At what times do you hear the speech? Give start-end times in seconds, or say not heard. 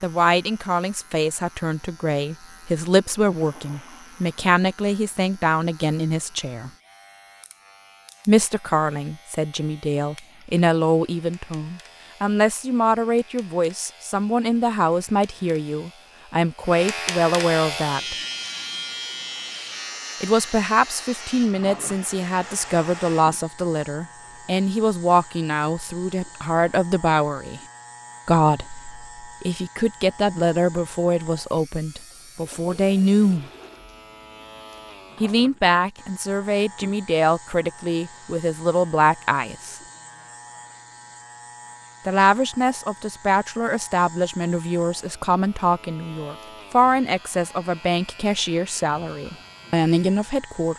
0.0-6.7, 8.2-18.1, 20.2-27.6, 28.2-33.5, 35.2-39.8, 42.0-50.7.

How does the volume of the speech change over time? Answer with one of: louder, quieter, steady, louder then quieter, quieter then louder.
steady.